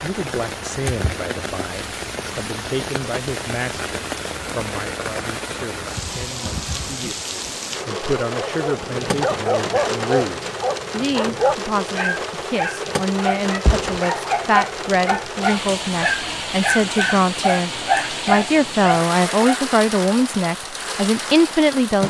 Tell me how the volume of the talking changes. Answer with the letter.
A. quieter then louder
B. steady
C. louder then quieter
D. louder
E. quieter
D.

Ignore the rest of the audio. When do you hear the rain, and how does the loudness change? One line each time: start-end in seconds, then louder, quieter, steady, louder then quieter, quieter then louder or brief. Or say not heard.
0.0-22.0 steady.